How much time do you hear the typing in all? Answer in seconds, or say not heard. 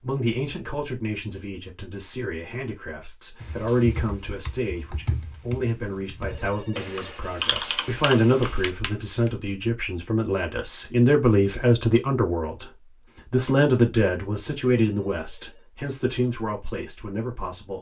6 s.